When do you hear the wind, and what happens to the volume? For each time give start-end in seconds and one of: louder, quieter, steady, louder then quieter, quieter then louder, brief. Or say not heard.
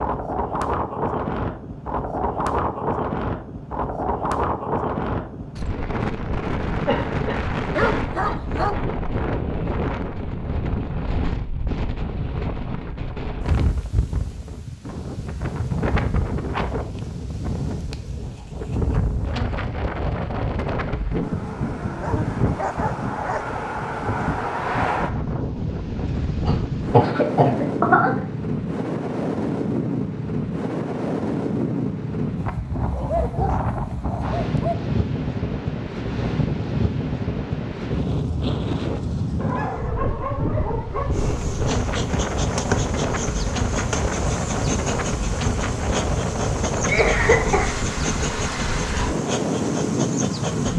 0.0-50.7 steady.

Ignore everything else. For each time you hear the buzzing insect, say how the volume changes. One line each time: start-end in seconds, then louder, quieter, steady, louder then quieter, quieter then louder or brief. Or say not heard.
41.1-50.7 steady.